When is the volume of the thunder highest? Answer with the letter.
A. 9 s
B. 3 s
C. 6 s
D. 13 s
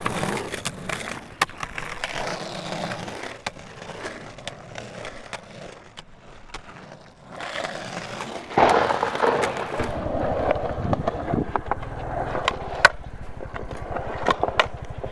A.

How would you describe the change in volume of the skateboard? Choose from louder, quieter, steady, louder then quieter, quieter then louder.
quieter then louder.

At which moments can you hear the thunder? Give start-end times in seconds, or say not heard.
8.5-11.1.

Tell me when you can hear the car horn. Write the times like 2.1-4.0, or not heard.
not heard.